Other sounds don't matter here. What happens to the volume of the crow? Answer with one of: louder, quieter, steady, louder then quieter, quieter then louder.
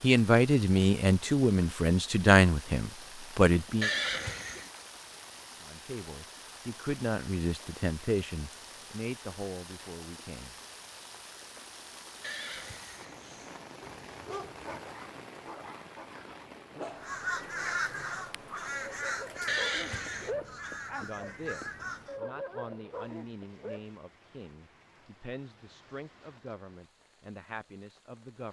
quieter.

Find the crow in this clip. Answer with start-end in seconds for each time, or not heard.
16.9-22.2.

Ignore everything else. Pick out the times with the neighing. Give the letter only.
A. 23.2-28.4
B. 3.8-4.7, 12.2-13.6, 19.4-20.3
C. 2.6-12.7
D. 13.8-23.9
B.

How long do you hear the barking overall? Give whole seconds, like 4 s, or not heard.
10 s.